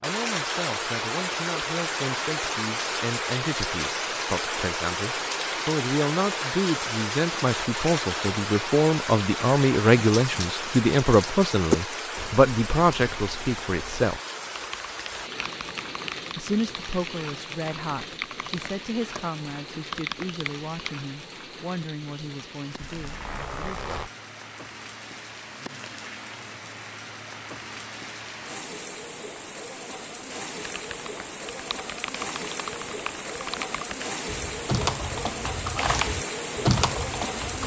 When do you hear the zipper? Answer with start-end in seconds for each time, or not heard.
22.9-24.1.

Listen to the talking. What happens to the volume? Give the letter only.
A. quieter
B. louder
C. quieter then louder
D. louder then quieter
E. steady
D.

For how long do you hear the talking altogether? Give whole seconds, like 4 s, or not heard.
22 s.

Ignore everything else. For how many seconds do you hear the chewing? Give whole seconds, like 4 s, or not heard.
not heard.